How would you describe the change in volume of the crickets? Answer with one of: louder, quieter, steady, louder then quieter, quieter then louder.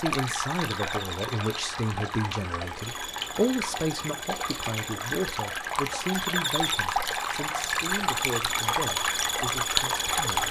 louder.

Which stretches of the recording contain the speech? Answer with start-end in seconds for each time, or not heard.
0.0-10.4.